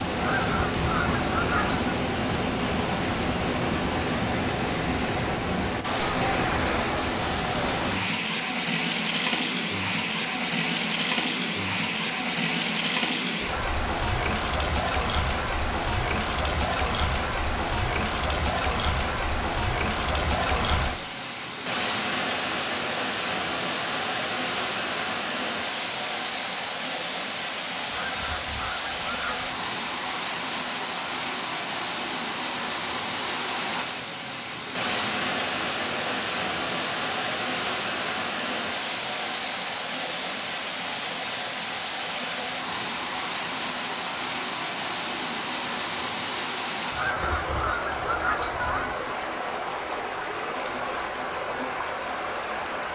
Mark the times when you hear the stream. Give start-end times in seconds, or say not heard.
0.0-52.8.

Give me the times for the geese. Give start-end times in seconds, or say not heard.
0.1-1.9, 27.9-29.6, 46.9-49.0.